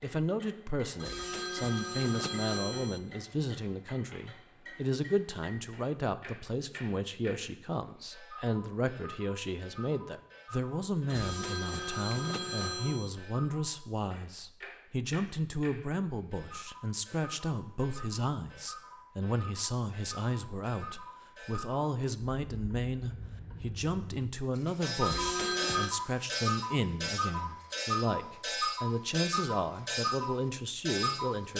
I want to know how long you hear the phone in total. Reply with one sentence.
You can hear the phone for 5 seconds altogether.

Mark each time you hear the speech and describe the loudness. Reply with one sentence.
You can hear the speech from 0.0 to 31.5 s, at a steady volume.